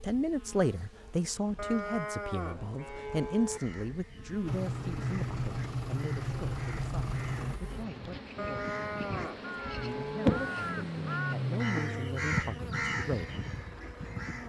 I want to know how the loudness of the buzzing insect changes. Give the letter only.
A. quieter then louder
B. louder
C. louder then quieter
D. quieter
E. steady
C.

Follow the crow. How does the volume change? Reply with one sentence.
The volume of the crow goes up.